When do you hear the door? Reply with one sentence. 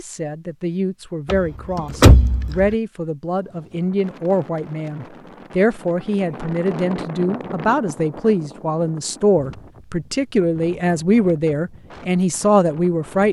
You can hear the door from 1.2 to 2.7 s.